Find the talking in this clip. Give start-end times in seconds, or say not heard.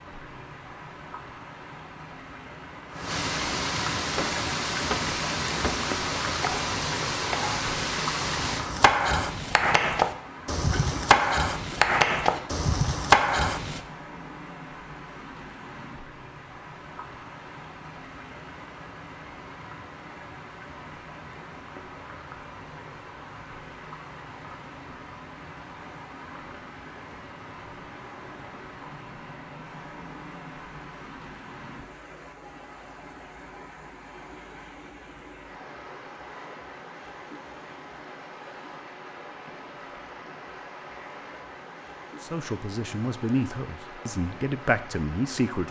42.2-45.6.